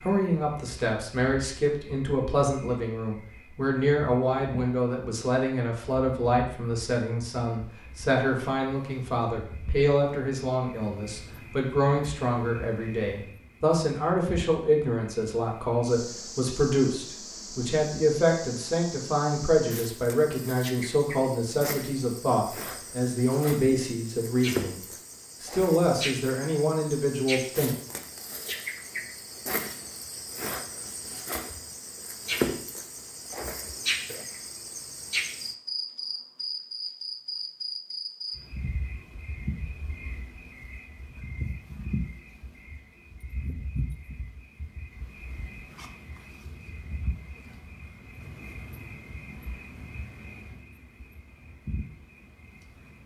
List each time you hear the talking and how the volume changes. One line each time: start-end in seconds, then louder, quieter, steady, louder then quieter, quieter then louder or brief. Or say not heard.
0.0-24.8 steady
25.4-27.8 brief.